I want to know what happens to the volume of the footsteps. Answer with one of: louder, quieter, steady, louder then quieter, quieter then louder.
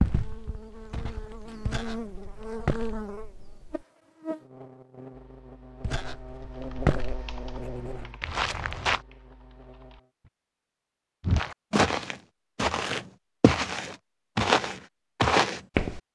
louder.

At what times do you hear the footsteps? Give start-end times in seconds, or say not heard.
0.0-3.0, 5.8-9.0, 11.2-16.0.